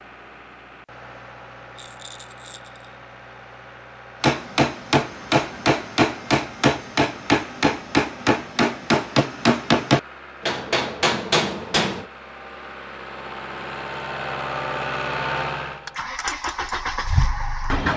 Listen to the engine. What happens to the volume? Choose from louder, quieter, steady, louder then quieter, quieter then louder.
louder.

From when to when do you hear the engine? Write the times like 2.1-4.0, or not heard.
0.0-17.9.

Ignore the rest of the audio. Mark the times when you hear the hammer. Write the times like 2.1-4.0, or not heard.
4.2-12.1.